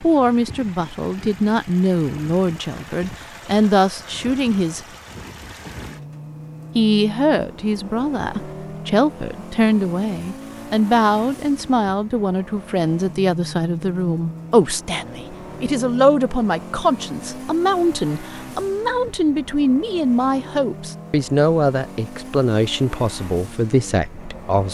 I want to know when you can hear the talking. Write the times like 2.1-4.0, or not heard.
0.0-4.8, 6.8-24.6.